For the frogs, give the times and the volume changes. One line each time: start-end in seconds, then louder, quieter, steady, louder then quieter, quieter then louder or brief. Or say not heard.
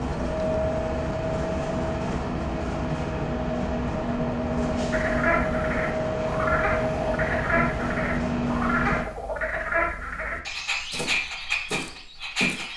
4.9-12.7 steady.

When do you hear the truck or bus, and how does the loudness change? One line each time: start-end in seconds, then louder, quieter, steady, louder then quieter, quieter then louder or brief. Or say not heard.
0.0-9.1 steady.